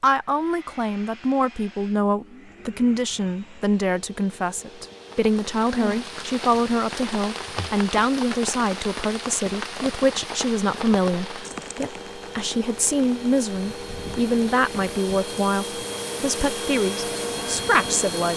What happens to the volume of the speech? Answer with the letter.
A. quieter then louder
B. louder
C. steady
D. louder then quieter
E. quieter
C.